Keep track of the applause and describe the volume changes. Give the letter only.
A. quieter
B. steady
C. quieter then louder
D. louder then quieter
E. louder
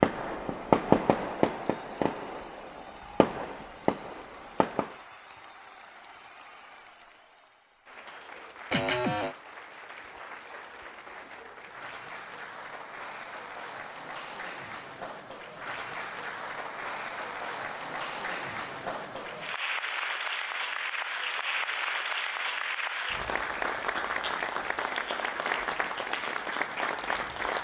E.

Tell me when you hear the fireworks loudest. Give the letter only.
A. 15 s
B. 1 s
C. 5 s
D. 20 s
B.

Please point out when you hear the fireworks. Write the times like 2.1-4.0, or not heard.
0.0-5.0.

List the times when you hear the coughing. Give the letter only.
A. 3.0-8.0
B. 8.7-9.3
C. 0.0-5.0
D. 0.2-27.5
B.